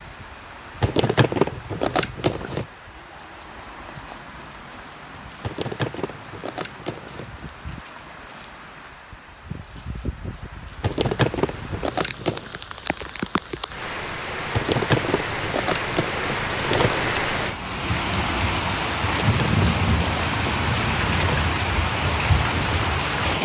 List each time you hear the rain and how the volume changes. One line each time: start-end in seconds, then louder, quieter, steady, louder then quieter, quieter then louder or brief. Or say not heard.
0.0-23.4 louder.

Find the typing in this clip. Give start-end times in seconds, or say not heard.
not heard.